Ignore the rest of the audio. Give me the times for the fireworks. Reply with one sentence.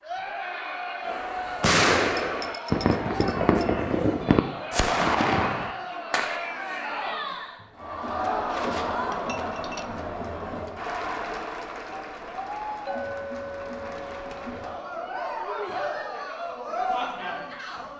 You can hear the fireworks from 1.1 to 6.4 s.